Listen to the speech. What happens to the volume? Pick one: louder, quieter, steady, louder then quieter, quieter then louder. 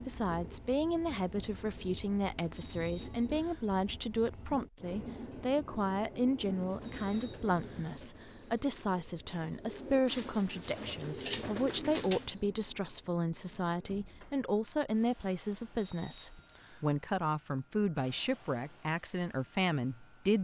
steady.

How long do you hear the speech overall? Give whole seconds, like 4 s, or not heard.
20 s.